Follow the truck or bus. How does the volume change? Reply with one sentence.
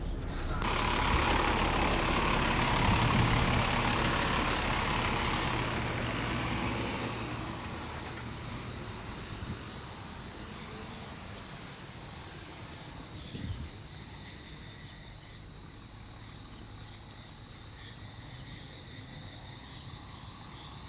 The loudness of the truck or bus goes down.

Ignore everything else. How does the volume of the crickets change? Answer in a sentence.
The loudness of the crickets goes up.